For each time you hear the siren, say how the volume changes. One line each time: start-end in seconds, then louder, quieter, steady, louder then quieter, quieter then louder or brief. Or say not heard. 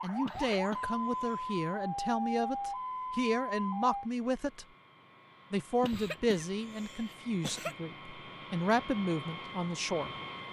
0.0-4.1 steady.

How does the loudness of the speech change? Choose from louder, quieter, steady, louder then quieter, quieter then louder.
steady.